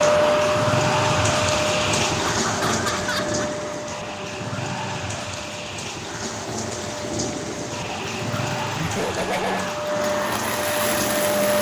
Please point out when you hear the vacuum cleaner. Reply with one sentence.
The vacuum cleaner can be heard from 0.0 to 11.5 s.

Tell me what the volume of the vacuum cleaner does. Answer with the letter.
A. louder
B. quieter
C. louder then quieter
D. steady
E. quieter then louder
E.